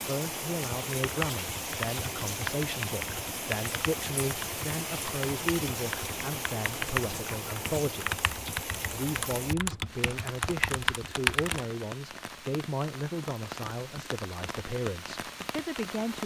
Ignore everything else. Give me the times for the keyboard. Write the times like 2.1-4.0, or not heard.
0.7-11.6.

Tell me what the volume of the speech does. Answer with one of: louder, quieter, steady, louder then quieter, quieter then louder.
steady.